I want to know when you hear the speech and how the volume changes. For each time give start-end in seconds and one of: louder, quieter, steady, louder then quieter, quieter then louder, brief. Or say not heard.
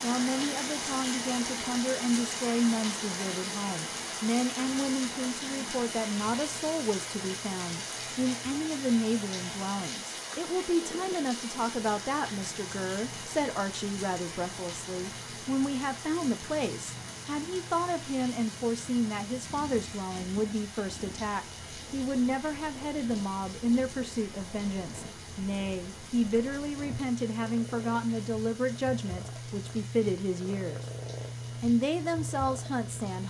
0.0-30.9 steady
31.6-33.2 brief.